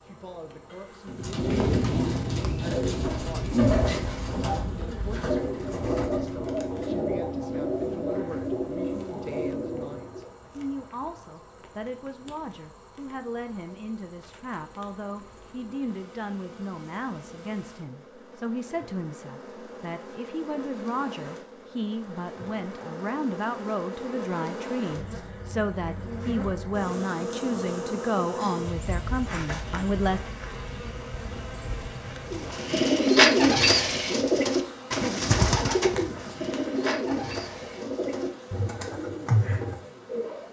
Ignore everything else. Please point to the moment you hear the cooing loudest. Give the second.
33 s.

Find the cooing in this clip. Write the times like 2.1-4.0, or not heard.
1.1-10.3, 32.3-40.4.